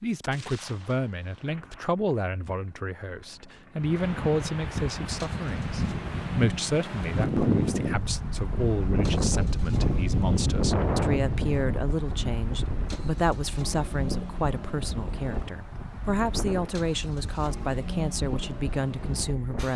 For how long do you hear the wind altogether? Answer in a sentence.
You can hear the wind for 16 seconds altogether.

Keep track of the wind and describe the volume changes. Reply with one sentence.
The loudness of the wind goes up, then down.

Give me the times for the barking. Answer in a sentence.
You can't hear the barking here.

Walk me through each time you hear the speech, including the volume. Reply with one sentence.
You can hear the speech from 0.0 to 19.7 s, at a steady volume.